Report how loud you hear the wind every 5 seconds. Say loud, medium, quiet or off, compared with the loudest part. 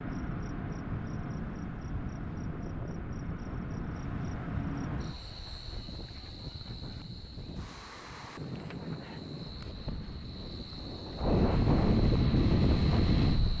quiet, quiet, loud.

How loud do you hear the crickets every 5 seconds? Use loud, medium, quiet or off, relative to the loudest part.
loud, medium, medium.